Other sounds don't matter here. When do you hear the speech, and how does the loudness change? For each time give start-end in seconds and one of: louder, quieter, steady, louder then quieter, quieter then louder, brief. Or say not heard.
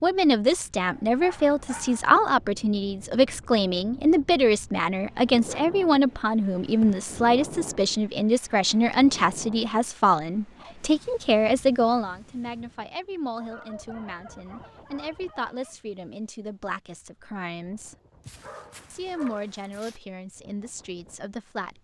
0.0-17.9 quieter
18.9-21.7 brief.